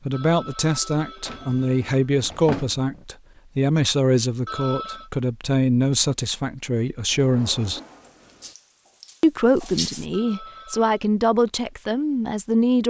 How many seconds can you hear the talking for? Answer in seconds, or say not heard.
11 s.